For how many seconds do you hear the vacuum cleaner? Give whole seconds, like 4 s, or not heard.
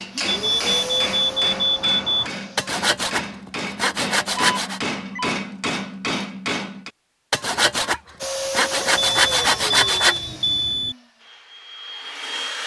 7 s.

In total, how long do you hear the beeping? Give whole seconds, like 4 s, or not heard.
5 s.